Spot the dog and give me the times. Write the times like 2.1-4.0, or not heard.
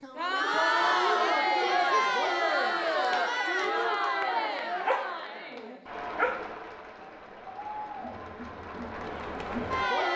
4.8-6.5.